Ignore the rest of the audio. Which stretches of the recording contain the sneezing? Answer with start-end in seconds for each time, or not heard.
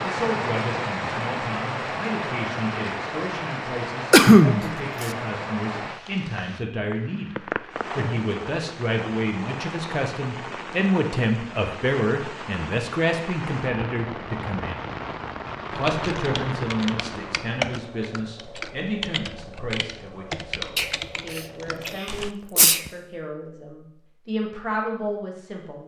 4.1-5.1, 20.8-22.9.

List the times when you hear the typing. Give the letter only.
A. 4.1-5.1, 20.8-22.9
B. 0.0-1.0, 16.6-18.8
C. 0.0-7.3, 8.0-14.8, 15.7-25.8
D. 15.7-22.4
D.